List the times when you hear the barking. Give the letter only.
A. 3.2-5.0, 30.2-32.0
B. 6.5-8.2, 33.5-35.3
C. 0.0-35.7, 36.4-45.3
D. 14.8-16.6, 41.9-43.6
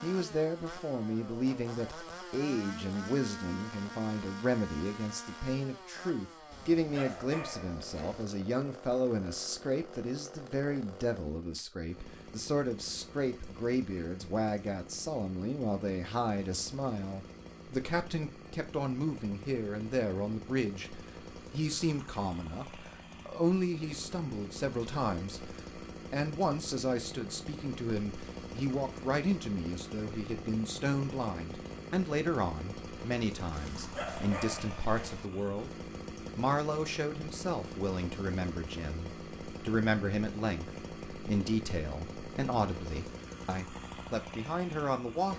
B.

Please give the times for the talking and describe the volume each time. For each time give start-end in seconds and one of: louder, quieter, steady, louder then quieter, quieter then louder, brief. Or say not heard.
0.0-35.7 steady
36.4-45.3 steady.